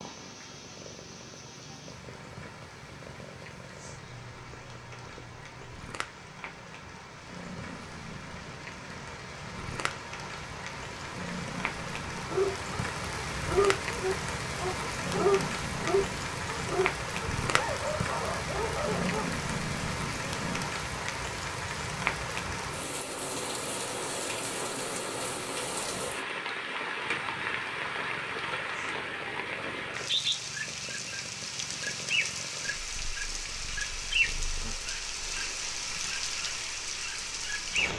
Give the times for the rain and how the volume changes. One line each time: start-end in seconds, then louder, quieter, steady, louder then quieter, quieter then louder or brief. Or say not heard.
0.0-37.9 louder.